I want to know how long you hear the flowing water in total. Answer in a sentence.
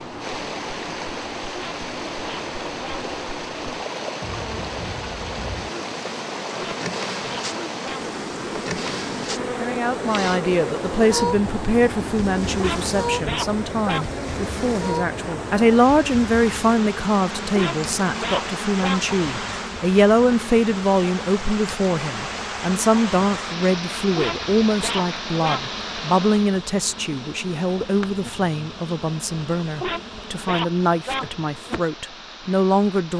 You can hear the flowing water for 33 seconds altogether.